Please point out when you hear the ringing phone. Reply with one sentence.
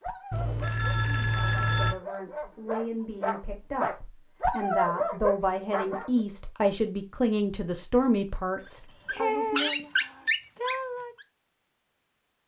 The ringing phone can be heard from 0.3 to 1.9 s.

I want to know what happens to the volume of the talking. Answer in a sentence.
The volume of the talking goes up.